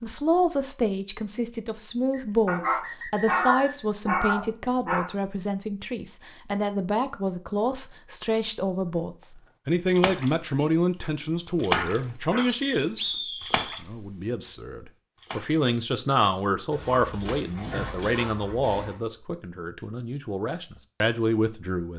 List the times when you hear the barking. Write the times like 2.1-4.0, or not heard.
2.5-5.1, 11.7-12.4, 16.7-19.0.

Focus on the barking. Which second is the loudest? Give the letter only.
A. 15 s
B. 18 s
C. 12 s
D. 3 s
D.